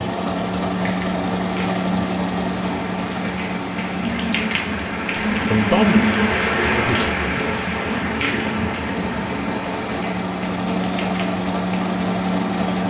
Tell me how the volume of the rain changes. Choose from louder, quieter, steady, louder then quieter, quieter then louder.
louder then quieter.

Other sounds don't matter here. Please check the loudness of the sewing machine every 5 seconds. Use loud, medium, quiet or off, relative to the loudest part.
loud, medium, loud.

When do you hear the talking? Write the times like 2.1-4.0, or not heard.
5.5-7.1.